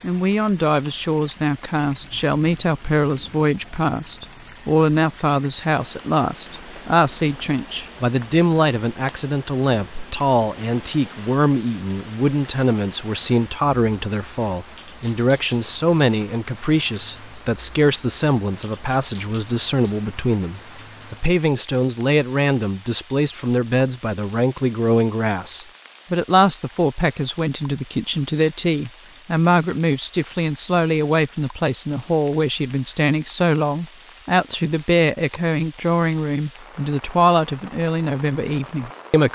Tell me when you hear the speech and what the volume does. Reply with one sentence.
The speech can be heard from 0.0 to 39.3 s, at a steady volume.